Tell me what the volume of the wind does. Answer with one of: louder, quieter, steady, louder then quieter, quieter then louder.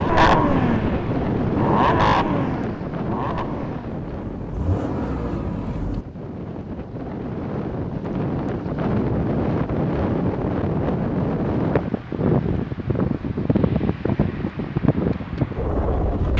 quieter then louder.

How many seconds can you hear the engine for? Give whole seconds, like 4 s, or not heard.
6 s.